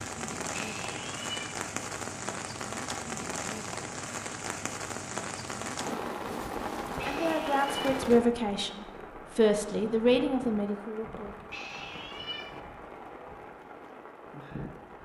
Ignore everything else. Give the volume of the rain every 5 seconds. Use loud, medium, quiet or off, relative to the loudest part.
loud, loud, medium.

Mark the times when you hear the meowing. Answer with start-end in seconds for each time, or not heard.
0.5-1.6, 7.0-7.8, 11.5-12.6.